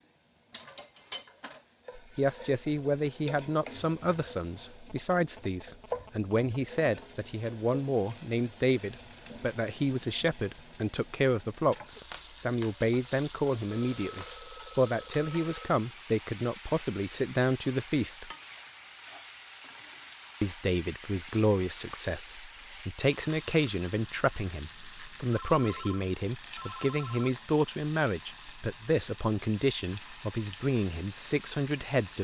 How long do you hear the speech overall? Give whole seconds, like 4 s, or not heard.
28 s.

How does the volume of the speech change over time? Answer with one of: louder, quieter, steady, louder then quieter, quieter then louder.
steady.